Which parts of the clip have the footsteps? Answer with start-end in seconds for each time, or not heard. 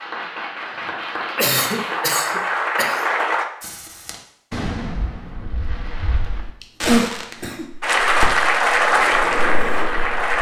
not heard.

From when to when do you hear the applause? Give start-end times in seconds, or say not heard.
0.0-3.5, 7.8-10.3.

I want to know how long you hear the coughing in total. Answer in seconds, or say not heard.
3 s.